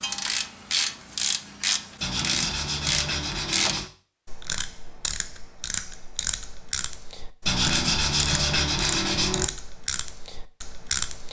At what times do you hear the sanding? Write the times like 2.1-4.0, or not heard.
2.0-3.9, 7.5-9.4.